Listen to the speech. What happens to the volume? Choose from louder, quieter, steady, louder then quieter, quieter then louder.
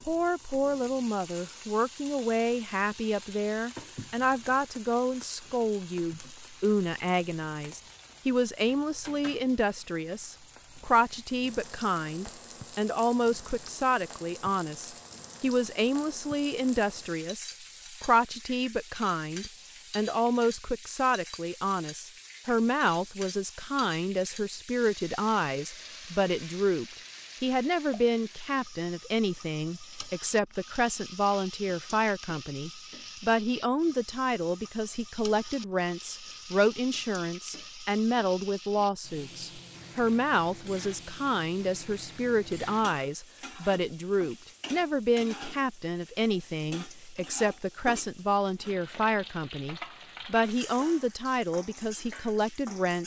steady.